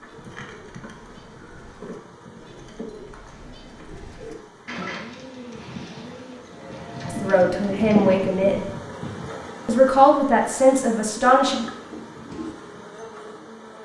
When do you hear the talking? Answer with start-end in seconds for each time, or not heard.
7.0-8.7, 9.7-11.6.